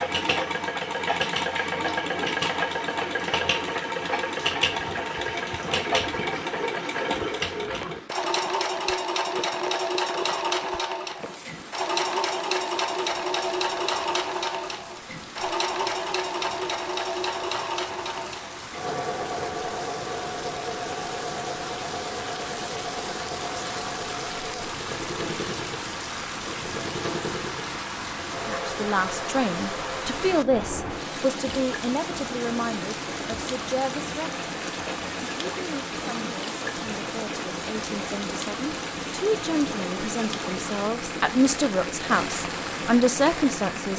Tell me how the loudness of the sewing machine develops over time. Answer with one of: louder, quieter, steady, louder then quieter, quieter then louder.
quieter.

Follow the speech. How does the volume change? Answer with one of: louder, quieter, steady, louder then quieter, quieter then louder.
quieter then louder.